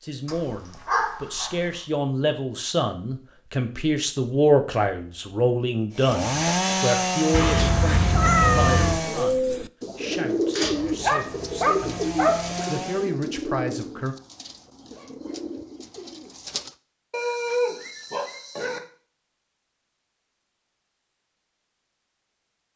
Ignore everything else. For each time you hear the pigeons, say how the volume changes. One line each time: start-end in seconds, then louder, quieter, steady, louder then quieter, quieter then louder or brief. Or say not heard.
8.4-16.8 quieter.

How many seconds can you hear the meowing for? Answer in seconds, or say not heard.
2 s.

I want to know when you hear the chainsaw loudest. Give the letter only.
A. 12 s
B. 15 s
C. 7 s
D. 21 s
C.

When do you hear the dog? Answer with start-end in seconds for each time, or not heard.
0.2-1.6, 10.8-12.7, 17.1-18.8.